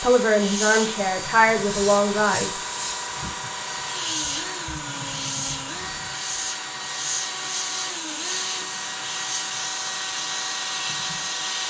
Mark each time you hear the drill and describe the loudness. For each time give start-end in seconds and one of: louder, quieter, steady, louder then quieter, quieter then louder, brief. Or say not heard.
0.0-11.6 steady.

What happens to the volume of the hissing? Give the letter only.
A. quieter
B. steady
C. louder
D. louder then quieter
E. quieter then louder
B.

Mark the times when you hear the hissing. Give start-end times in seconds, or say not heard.
0.0-11.6.